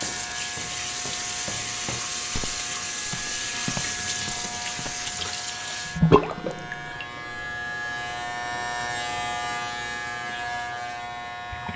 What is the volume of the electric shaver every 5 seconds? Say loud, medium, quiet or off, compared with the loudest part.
medium, loud, loud.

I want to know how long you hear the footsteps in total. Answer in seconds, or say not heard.
5 s.